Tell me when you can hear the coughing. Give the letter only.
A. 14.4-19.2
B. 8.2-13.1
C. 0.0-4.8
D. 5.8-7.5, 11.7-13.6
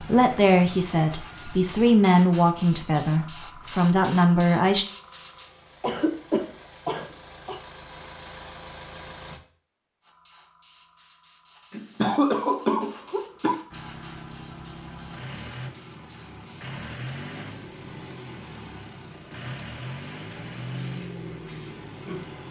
D.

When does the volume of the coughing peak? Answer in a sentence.
The volume of the coughing peaks at 12 seconds.